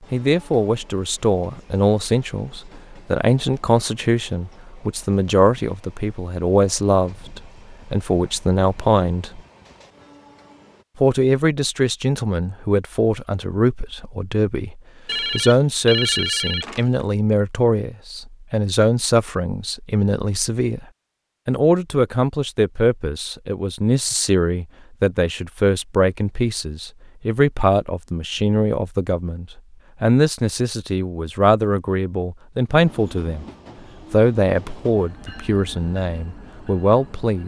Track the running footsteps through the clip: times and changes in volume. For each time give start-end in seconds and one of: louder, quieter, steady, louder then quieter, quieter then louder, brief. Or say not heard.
not heard.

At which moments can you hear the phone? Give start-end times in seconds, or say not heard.
15.1-17.1.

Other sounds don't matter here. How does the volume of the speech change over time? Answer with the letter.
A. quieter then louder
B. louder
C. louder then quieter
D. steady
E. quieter
D.